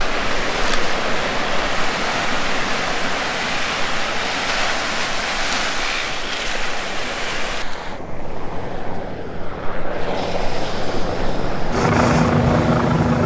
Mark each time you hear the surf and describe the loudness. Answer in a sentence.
The surf can be heard from 0.0 to 13.2 s, getting quieter then louder.